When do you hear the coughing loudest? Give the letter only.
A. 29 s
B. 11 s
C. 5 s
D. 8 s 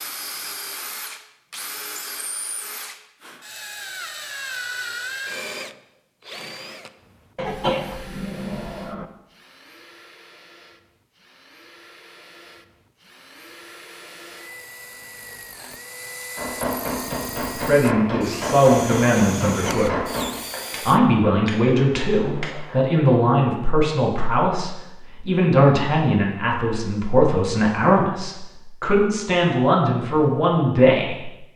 D.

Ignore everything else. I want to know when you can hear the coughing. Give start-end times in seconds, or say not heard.
7.3-9.1.